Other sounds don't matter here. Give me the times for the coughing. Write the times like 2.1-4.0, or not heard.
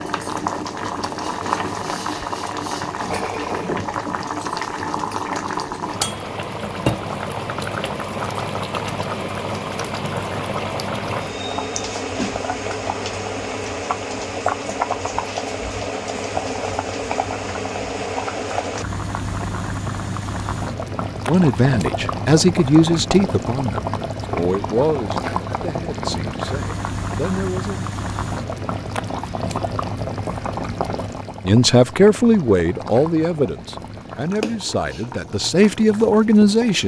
not heard.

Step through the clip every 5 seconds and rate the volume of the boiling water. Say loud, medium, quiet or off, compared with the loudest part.
loud, loud, loud, loud, loud, loud, medium, medium.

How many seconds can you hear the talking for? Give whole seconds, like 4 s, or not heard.
12 s.